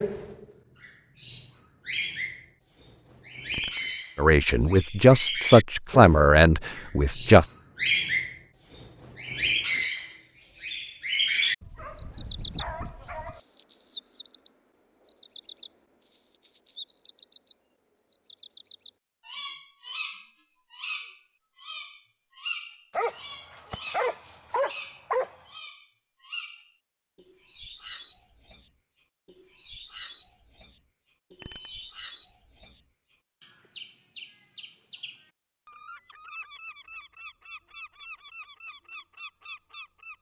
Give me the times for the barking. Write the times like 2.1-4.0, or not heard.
11.6-13.4, 22.9-25.4.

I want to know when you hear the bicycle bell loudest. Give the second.
4 s.